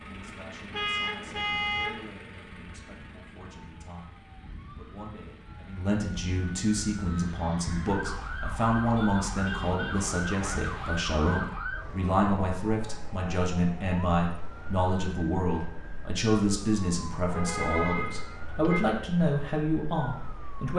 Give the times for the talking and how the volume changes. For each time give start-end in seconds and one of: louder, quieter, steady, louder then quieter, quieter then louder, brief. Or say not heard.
0.0-20.7 louder.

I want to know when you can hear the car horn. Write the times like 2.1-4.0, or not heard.
0.7-2.0, 9.4-10.7, 17.3-18.8.